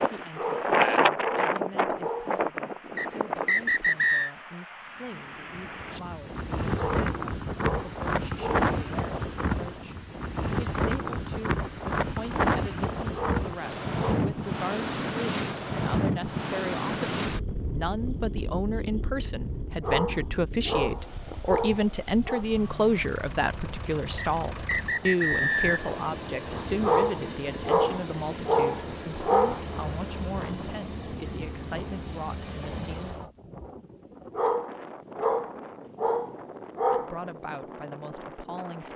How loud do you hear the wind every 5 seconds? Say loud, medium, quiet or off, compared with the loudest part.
loud, loud, loud, loud, quiet, quiet, quiet, quiet.